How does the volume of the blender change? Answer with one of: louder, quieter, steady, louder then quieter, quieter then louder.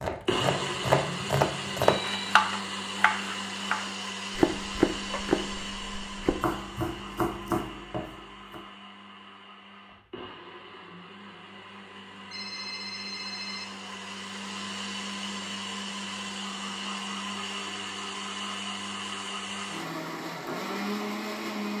quieter then louder.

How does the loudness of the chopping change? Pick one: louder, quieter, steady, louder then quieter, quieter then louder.
quieter.